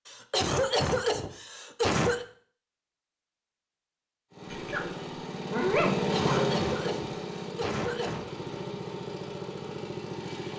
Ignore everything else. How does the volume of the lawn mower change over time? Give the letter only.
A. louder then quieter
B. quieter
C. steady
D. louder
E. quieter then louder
A.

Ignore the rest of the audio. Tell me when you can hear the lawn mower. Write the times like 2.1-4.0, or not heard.
4.3-10.5.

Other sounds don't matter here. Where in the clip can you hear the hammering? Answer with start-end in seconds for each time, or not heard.
not heard.